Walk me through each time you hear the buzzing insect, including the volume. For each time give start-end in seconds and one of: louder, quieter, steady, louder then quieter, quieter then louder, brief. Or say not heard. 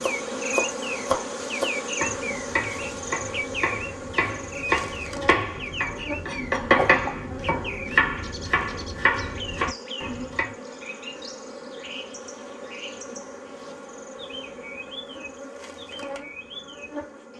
0.0-17.3 quieter.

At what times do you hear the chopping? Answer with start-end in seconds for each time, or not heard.
0.0-10.5.